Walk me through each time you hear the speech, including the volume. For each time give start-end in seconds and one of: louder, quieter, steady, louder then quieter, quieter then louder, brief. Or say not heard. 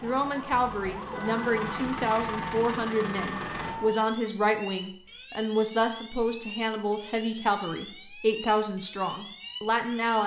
0.0-10.2 steady.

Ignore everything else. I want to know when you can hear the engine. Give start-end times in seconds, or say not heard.
0.0-3.8.